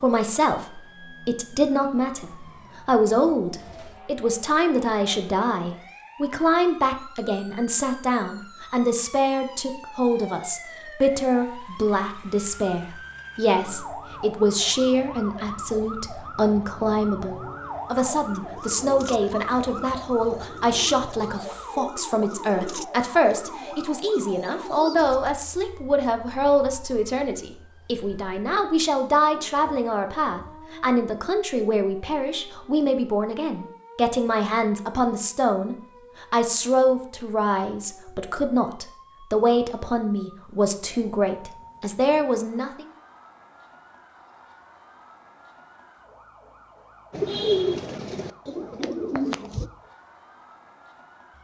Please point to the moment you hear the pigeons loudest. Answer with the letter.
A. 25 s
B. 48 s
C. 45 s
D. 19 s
B.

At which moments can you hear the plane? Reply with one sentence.
The plane can't be heard in this clip.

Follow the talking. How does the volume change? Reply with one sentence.
The volume of the talking stays about the same.